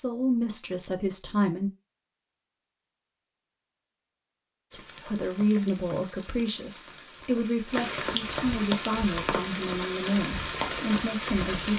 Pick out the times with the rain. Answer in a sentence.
You can hear the rain from 4.7 to 11.7 s.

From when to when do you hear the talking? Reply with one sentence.
The talking can be heard from 0.0 to 1.7 s and from 4.7 to 11.7 s.